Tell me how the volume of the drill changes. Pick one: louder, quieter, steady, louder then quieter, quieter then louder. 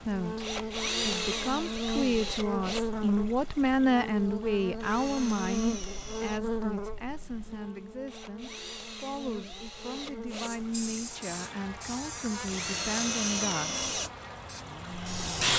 quieter then louder.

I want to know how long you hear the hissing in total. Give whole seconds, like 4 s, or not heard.
5 s.